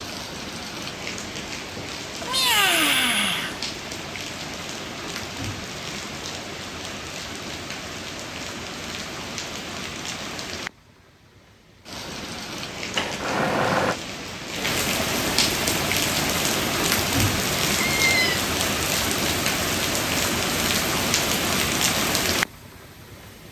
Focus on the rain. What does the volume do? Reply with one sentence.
The loudness of the rain goes up.